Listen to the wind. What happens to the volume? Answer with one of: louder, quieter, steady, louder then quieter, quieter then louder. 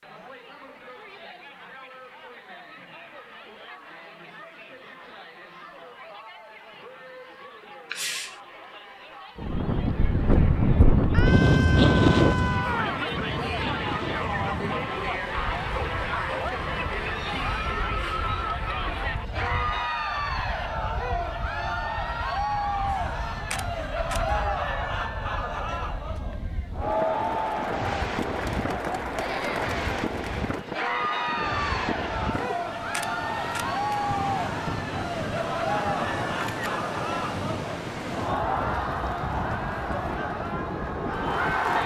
quieter then louder.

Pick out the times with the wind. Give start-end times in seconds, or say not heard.
9.3-41.8.